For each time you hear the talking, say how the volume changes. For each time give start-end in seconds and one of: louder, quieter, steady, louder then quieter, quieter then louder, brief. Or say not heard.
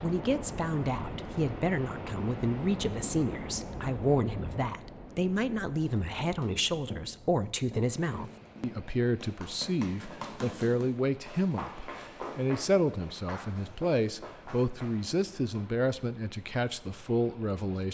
0.0-17.8 steady.